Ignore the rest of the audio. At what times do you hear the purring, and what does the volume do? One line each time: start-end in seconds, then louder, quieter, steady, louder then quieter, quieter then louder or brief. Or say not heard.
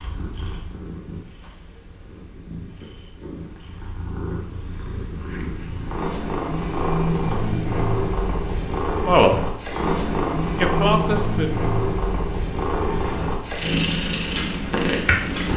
0.0-15.5 louder.